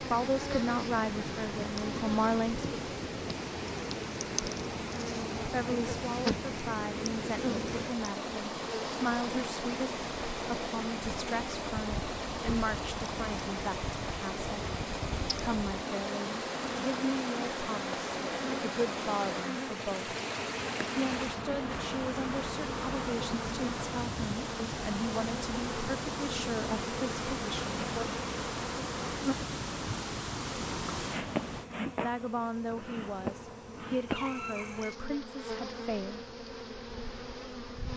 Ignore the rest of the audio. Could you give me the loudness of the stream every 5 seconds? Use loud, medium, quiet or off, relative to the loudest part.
loud, loud, loud, loud, loud, loud, loud, off.